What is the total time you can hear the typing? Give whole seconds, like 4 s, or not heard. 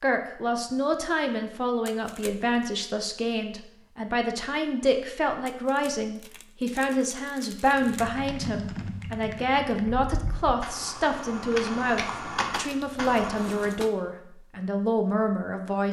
6 s.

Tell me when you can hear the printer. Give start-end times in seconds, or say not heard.
not heard.